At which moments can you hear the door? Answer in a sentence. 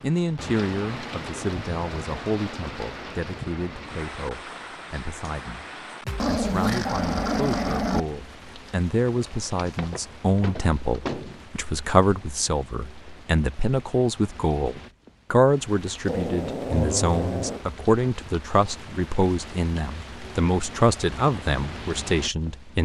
You can hear the door from 9.1 to 11.4 s.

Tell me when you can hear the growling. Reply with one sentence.
You can hear the growling from 6.0 to 8.0 s and from 16.1 to 17.6 s.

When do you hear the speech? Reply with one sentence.
You can hear the speech from 0.0 to 5.7 s and from 6.2 to 22.8 s.